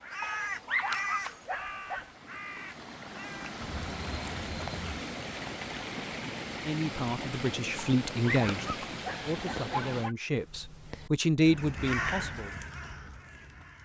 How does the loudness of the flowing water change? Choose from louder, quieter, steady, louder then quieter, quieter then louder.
louder.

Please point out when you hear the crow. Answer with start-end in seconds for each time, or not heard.
0.0-5.0, 10.3-13.8.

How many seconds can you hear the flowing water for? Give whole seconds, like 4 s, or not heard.
10 s.